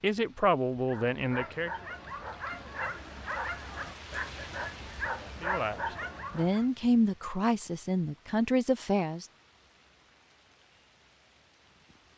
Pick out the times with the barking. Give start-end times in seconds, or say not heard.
0.8-6.7.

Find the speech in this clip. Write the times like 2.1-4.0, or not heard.
0.0-1.7, 5.4-9.2.